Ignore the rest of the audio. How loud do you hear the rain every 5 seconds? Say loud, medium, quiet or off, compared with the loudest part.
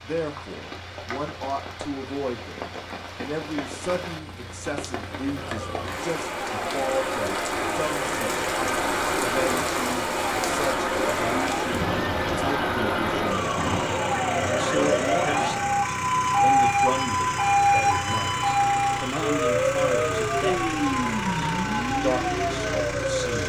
medium, loud, loud, off, off.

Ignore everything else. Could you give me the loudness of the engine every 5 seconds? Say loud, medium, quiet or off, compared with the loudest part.
quiet, loud, loud, loud, loud.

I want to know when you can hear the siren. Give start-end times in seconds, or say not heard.
5.3-23.4.